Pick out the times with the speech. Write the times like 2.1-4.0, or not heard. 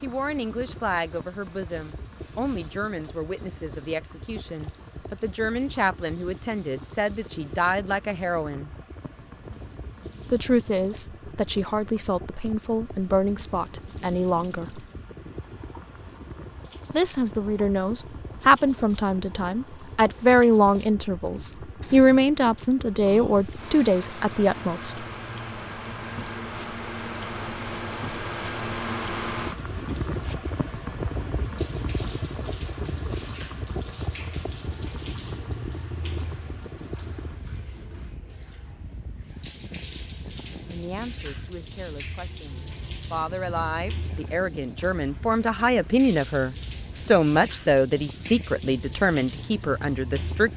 0.0-8.7, 10.3-14.8, 16.9-24.9, 40.5-50.5.